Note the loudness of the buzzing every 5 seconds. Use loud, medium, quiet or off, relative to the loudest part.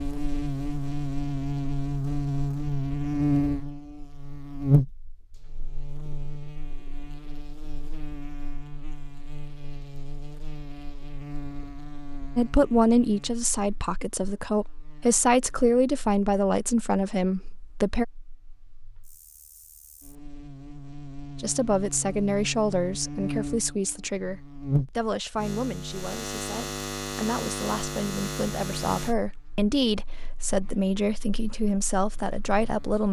loud, quiet, quiet, quiet, medium, medium, quiet.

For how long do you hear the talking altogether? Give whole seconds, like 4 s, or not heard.
17 s.